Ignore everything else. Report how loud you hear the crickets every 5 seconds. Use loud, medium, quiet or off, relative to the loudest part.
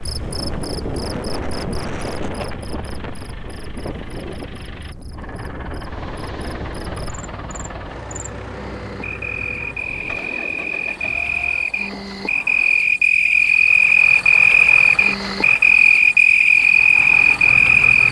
quiet, quiet, loud, loud.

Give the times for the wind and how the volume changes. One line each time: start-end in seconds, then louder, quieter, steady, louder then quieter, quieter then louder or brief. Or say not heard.
0.0-13.2 quieter.